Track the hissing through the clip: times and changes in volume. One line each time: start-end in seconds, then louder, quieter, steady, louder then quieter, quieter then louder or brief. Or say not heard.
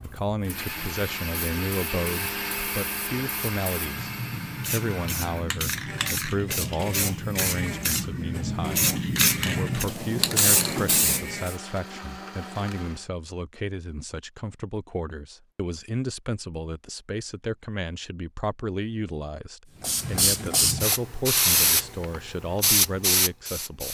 0.0-11.6 louder
19.8-23.9 steady.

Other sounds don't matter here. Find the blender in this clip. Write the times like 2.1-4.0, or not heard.
0.0-13.1.